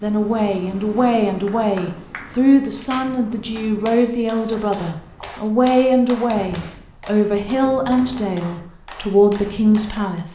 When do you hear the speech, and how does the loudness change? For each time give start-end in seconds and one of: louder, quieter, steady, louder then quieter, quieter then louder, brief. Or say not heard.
0.0-10.3 steady.